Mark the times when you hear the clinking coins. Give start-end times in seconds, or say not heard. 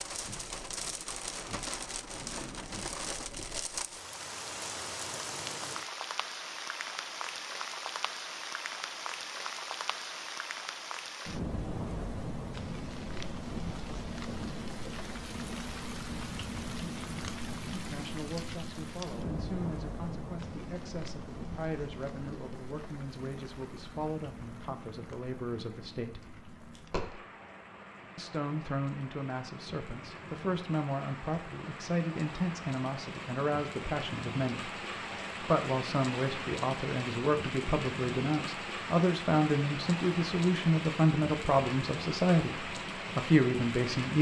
26.4-27.1.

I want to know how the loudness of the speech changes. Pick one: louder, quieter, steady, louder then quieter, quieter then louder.
louder.